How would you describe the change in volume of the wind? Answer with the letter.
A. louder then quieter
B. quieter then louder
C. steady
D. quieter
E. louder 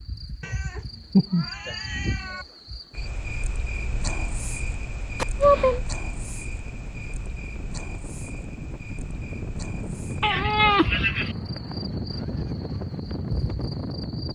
E.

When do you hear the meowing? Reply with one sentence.
You can hear the meowing from 0.4 to 2.5 s, from 5.2 to 5.8 s and from 10.2 to 11.3 s.